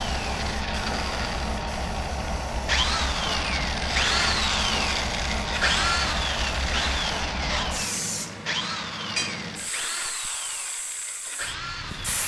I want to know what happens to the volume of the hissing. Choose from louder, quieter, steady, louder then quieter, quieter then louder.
quieter.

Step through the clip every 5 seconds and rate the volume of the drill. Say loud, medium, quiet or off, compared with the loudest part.
loud, loud, medium.